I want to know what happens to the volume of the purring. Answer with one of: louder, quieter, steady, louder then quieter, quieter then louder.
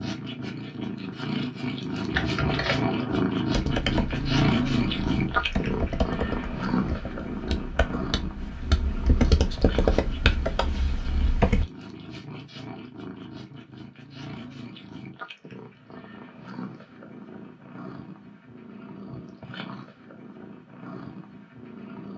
quieter.